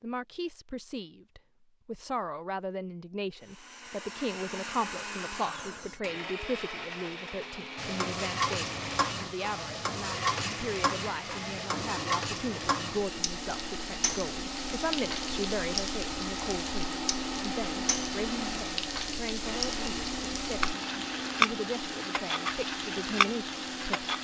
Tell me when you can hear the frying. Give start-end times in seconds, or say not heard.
7.8-24.1.